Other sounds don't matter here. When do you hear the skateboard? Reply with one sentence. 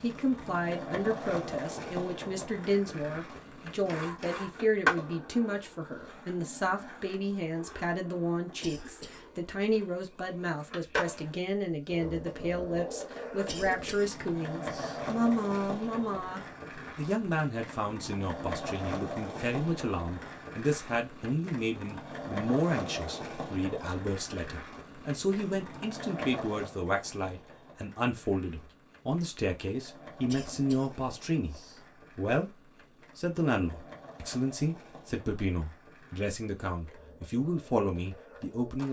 The skateboard can be heard from 0.0 to 38.8 s.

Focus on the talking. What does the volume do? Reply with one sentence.
The loudness of the talking stays about the same.